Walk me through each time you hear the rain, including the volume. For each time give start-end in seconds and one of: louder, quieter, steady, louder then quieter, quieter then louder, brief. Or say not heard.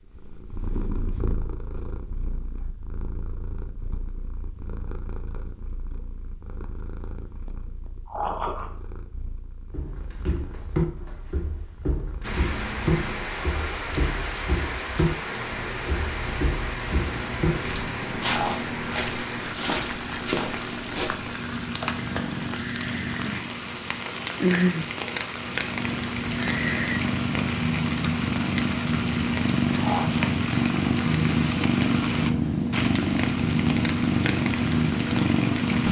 12.2-35.8 steady.